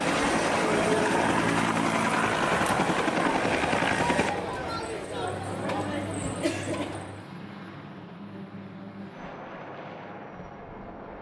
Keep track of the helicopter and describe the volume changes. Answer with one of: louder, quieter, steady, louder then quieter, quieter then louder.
quieter.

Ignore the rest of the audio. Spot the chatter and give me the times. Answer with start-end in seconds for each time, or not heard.
0.0-7.2.